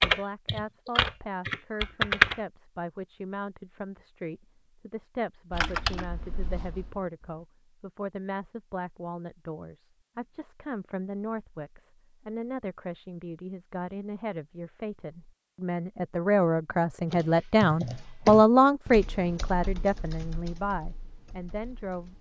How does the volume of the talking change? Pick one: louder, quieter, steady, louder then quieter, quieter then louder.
louder.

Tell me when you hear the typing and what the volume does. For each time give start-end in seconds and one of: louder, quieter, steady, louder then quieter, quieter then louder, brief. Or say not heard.
0.0-2.4 brief
5.5-7.5 brief
17.1-22.1 quieter.